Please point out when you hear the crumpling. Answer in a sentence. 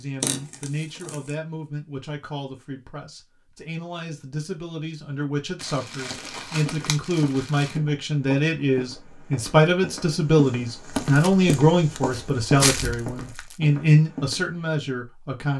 The crumpling can be heard from 0.2 to 1.3 s, from 5.5 to 7.8 s and from 10.9 to 13.6 s.